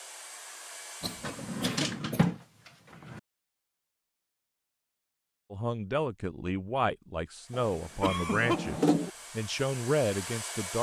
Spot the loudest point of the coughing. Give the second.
8 s.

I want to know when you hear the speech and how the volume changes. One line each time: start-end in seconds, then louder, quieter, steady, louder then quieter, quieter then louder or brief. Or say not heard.
5.5-10.7 quieter then louder.